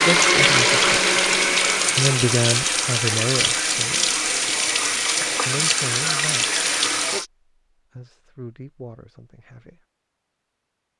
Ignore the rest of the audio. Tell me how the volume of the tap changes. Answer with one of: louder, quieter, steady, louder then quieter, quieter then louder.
steady.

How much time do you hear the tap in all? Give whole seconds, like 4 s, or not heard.
7 s.